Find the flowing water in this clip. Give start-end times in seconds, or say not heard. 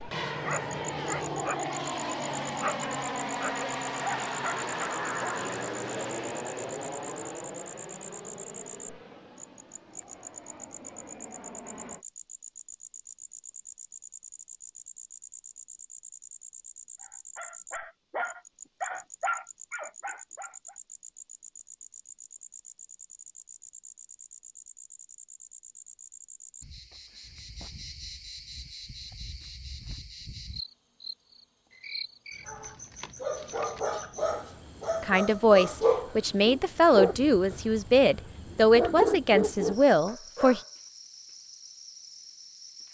not heard.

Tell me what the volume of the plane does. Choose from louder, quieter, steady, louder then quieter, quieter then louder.
quieter.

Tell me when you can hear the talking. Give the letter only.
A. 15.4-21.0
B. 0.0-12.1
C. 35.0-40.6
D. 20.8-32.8
C.